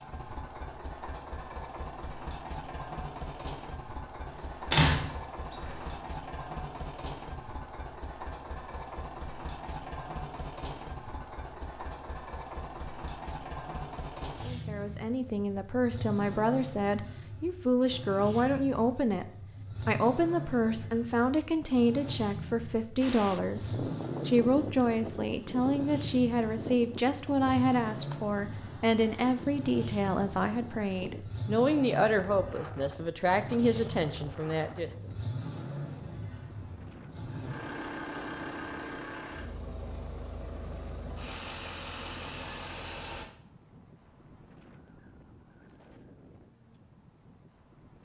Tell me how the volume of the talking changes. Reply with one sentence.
The volume of the talking stays about the same.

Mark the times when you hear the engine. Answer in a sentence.
The engine can be heard from 0.0 to 43.2 s.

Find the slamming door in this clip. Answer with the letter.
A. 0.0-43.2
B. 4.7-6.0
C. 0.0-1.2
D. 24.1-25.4
B.